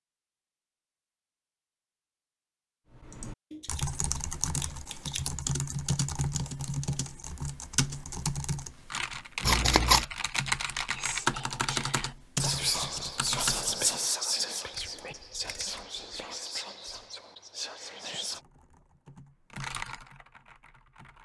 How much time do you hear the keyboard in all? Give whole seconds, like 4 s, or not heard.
14 s.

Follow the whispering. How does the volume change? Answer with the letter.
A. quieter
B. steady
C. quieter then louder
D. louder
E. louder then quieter
E.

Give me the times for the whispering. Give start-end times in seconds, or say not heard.
10.9-18.4.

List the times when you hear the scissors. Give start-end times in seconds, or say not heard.
3.5-5.2, 9.4-10.1, 14.7-15.8.